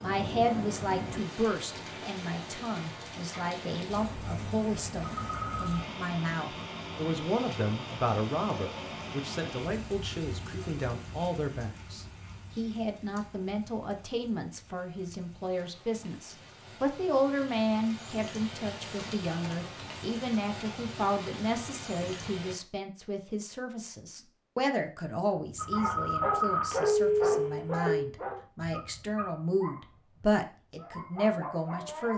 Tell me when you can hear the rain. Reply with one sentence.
You can hear the rain from 0.0 to 22.6 s.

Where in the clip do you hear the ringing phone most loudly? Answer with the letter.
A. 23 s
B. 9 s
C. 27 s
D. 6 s
C.